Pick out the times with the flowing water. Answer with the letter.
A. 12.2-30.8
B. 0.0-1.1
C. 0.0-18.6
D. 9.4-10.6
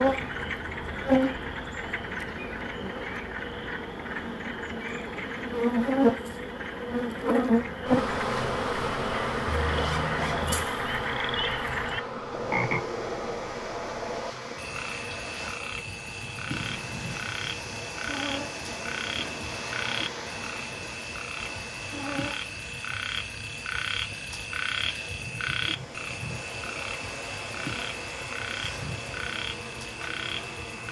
A.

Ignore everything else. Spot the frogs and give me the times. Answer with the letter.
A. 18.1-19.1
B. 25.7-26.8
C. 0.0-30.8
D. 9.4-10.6
C.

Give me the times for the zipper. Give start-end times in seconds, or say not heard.
9.4-10.6.